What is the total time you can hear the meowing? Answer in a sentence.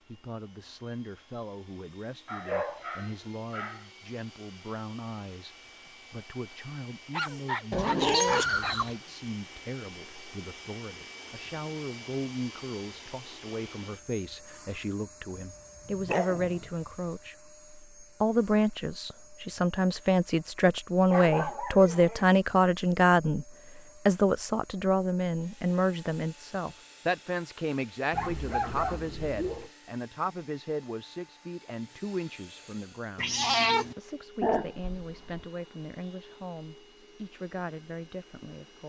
You can hear the meowing for 2 seconds altogether.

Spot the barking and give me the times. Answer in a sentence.
The barking can be heard from 2.2 to 3.9 s, from 7.1 to 8.8 s, from 15.3 to 17.1 s, from 21.1 to 22.3 s, from 28.1 to 29.7 s and from 34.4 to 35.5 s.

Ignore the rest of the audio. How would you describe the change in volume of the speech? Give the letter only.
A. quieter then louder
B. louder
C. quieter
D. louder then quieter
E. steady
D.